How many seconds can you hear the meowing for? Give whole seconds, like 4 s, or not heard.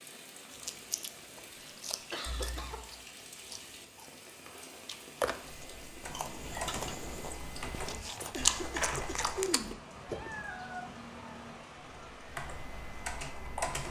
4 s.